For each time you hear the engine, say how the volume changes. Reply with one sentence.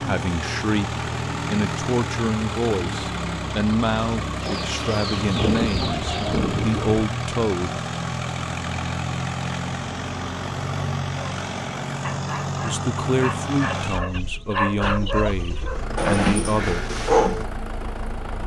The engine can be heard from 0.0 to 18.4 s, getting quieter.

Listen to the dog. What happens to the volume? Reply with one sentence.
The loudness of the dog goes up.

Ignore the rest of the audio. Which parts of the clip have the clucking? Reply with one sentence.
You can hear the clucking from 4.4 to 6.4 s and from 13.9 to 15.7 s.